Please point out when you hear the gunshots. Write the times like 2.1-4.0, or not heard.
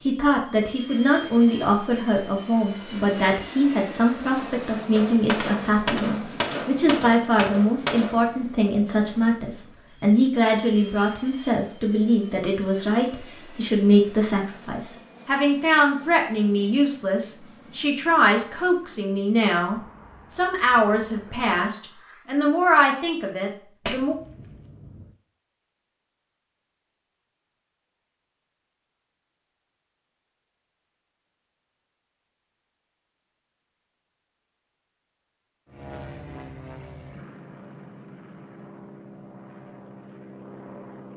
5.0-8.2, 23.9-25.1.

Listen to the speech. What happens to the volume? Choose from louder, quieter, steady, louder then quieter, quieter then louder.
steady.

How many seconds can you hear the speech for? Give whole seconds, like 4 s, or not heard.
24 s.